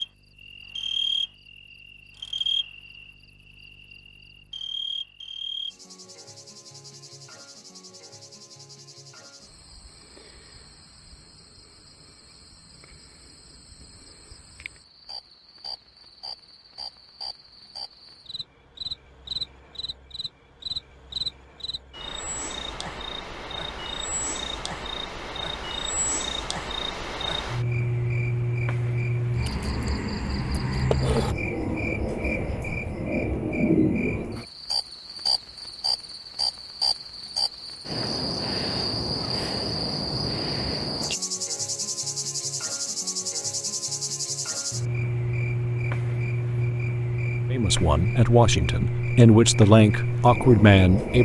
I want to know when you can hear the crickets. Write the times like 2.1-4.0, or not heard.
0.0-51.2.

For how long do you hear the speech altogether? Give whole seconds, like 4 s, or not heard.
4 s.